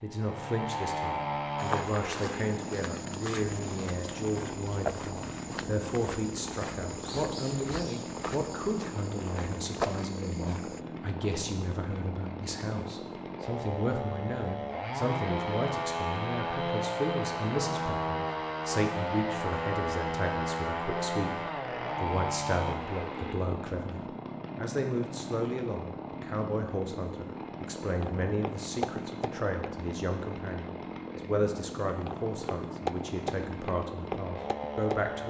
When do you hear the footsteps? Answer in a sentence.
The footsteps can be heard from 1.6 to 10.8 s, from 28.0 to 29.7 s and from 32.0 to 35.0 s.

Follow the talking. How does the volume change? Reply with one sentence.
The loudness of the talking stays about the same.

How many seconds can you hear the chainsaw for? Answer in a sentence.
You can hear the chainsaw for 35 seconds altogether.